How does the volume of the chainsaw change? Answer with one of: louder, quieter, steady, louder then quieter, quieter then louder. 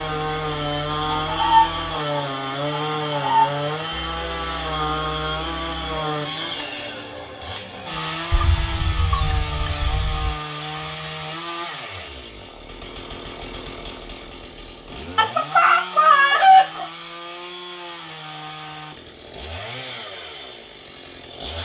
quieter.